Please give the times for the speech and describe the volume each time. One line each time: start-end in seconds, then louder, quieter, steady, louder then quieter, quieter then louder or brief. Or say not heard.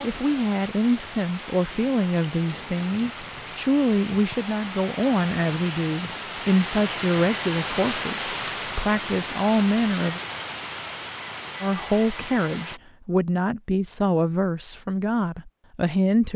0.0-10.2 steady
11.6-16.3 steady.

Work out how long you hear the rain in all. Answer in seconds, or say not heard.
13 s.